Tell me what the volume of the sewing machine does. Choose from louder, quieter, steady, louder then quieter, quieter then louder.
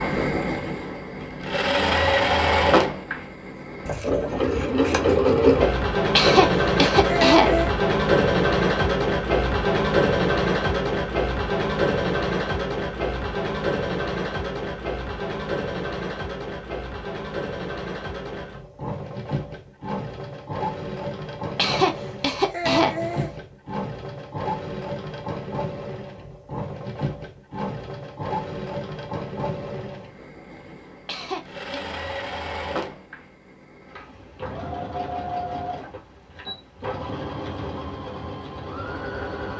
quieter.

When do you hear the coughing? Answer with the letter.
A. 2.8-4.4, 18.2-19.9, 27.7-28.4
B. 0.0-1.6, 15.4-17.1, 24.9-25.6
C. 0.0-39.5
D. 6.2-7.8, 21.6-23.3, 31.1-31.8
D.